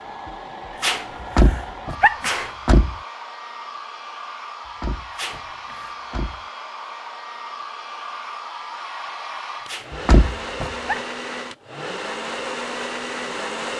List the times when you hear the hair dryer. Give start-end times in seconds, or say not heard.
0.0-13.7.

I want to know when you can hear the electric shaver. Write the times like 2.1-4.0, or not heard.
not heard.